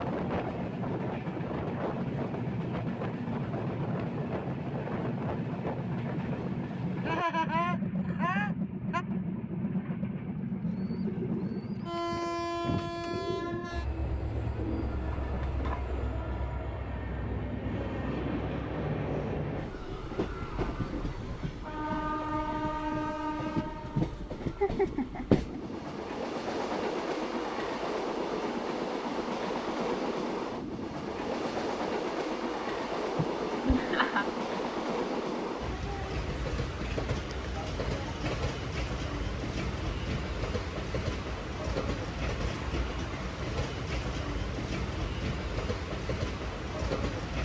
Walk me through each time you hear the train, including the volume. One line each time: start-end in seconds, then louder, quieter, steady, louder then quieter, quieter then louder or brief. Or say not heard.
0.0-47.3 steady.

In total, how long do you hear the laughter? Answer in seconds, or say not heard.
4 s.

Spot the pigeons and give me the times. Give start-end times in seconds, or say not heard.
10.6-16.2.